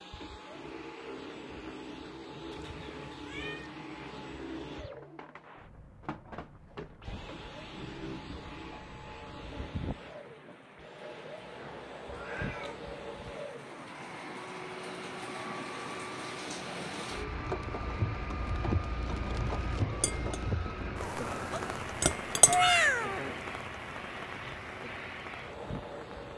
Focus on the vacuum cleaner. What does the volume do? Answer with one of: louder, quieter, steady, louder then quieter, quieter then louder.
steady.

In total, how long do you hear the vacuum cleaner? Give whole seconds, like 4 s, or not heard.
26 s.